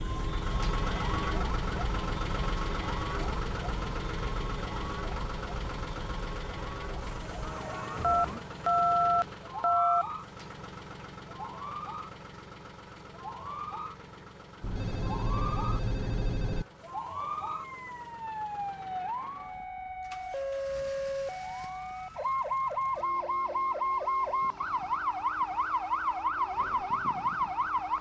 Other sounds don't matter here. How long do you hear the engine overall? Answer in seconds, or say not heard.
28 s.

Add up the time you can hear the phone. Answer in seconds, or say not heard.
4 s.